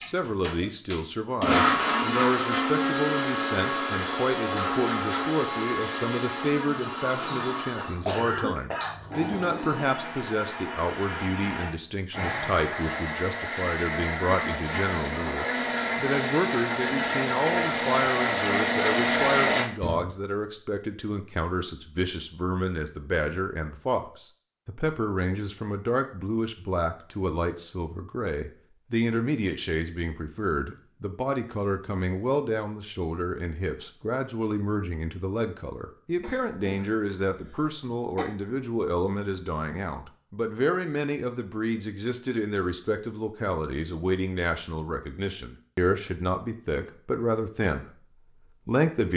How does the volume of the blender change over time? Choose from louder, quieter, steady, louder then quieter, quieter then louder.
quieter then louder.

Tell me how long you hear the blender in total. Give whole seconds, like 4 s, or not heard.
20 s.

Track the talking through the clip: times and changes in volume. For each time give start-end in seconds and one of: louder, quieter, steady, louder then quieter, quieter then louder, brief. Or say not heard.
0.0-49.1 steady.